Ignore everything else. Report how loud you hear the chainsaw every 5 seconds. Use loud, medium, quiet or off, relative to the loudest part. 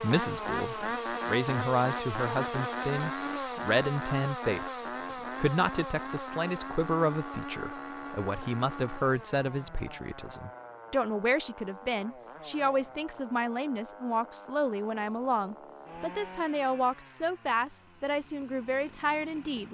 loud, medium, quiet, quiet.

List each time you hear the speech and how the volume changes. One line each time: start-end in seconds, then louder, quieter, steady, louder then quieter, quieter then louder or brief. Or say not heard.
0.0-19.6 steady.